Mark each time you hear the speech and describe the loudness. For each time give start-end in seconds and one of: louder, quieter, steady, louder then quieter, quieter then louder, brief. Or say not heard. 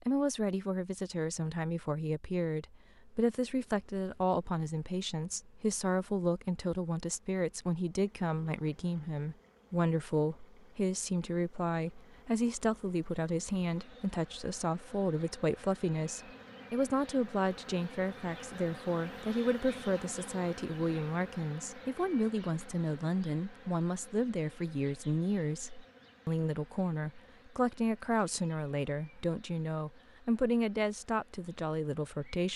0.0-32.5 steady.